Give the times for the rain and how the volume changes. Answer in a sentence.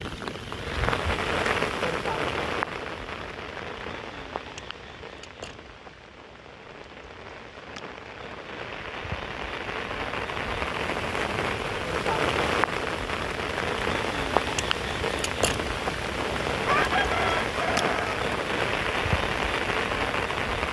You can hear the rain from 0.0 to 20.6 s, getting quieter then louder.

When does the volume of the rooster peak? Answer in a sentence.
The volume of the rooster peaks at 17 seconds.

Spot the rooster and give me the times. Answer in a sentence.
The rooster can be heard from 16.6 to 18.2 s.